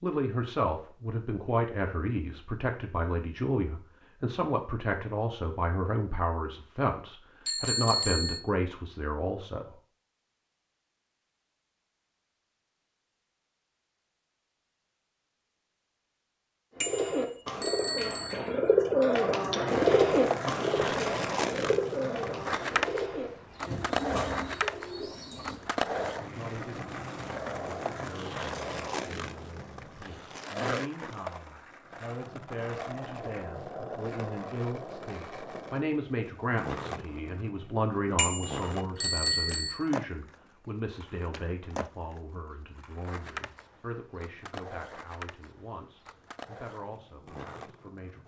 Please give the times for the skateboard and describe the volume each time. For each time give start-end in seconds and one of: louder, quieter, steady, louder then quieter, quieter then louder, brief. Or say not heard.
19.6-48.2 quieter.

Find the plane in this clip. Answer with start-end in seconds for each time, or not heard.
not heard.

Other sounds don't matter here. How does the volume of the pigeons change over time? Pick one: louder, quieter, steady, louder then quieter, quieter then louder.
louder then quieter.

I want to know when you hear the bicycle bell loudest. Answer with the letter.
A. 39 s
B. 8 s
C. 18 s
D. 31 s
A.